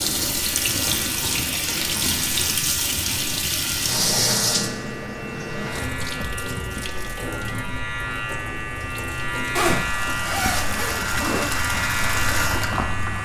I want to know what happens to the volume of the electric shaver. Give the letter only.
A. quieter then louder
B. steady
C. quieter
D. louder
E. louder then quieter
D.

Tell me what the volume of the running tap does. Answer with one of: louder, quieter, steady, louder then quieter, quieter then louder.
quieter then louder.